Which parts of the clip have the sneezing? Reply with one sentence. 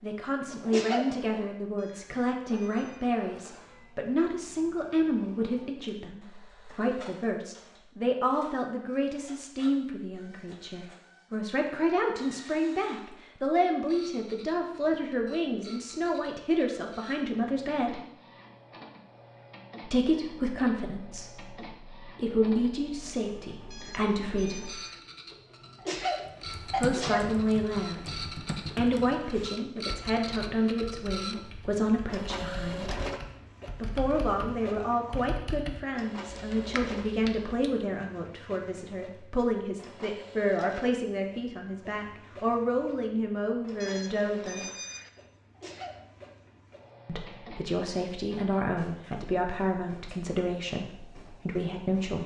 The sneezing can be heard from 0.7 to 1.2 s, from 25.8 to 27.4 s and from 45.5 to 46.0 s.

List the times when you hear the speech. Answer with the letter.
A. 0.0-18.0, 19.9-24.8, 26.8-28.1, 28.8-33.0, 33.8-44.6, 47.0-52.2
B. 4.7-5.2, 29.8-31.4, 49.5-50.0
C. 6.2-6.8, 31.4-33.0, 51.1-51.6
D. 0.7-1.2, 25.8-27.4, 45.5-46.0
A.